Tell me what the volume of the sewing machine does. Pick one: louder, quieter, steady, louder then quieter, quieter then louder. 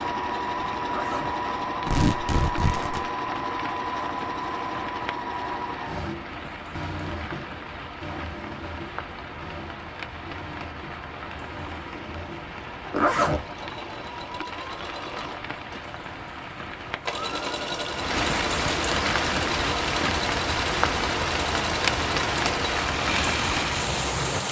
quieter then louder.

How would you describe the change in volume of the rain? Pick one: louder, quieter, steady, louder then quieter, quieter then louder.
louder.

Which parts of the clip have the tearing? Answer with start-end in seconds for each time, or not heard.
1.9-3.1.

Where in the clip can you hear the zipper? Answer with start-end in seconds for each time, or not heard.
0.8-1.4, 12.9-13.4.